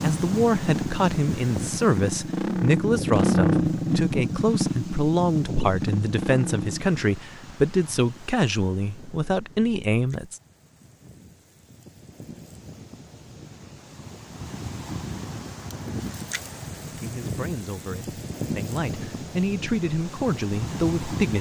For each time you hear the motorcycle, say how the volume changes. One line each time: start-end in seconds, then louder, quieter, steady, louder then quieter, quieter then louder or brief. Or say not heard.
0.0-6.8 louder then quieter.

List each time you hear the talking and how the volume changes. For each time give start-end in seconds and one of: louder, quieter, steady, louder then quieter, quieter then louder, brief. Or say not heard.
0.0-10.4 steady
16.9-21.3 louder.